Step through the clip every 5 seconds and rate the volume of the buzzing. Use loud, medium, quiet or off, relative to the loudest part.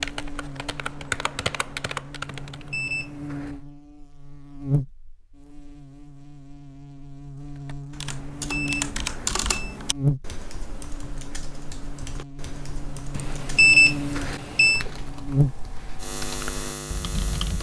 medium, medium, loud, loud.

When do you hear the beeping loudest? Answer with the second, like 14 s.
14 s.